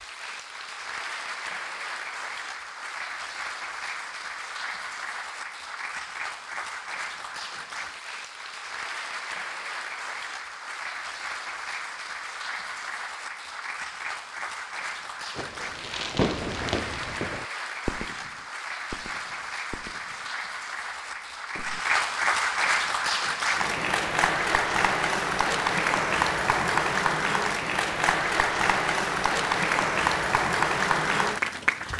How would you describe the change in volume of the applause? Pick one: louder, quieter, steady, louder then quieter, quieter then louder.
louder.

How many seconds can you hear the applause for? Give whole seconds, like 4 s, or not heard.
32 s.